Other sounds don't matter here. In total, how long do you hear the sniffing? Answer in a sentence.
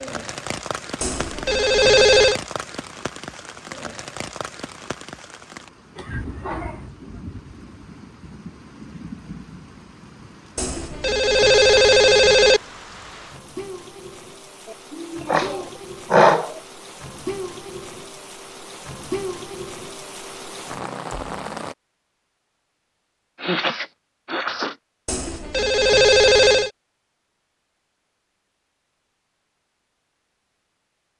The sniffing can be heard for 4 seconds in total.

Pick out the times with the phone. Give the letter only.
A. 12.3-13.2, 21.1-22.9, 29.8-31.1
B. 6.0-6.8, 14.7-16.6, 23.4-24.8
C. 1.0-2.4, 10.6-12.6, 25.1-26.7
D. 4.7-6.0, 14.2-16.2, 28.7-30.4
C.